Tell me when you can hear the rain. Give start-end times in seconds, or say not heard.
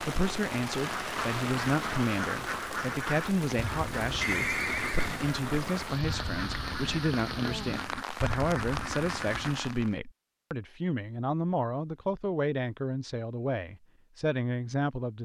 0.0-9.9.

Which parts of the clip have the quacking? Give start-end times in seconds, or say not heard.
0.8-9.7.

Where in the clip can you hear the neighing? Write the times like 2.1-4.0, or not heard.
4.2-5.9.